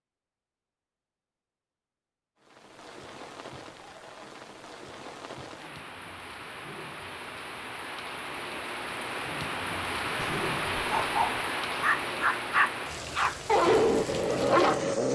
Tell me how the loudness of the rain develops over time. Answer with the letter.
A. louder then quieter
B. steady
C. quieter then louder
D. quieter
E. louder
A.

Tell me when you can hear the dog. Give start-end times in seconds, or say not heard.
10.2-15.1.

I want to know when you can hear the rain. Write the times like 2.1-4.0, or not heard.
2.4-15.1.